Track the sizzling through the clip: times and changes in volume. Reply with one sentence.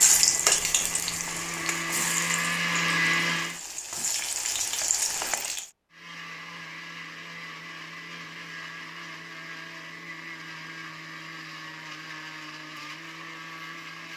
The sizzling can be heard from 0.0 to 5.7 s, getting quieter then louder.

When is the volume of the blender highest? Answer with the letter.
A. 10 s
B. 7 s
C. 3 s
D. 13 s
C.